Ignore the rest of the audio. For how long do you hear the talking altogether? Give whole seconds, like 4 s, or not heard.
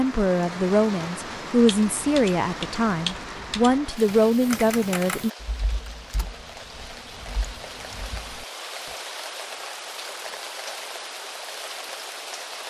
5 s.